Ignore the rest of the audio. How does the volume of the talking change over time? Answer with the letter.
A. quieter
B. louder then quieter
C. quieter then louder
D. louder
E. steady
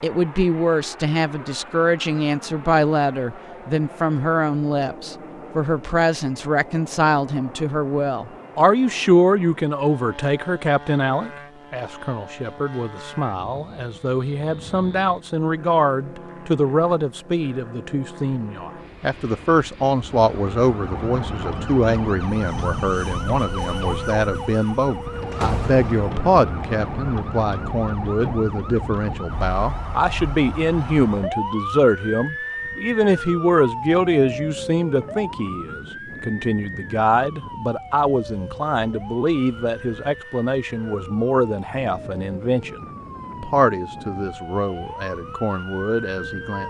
E.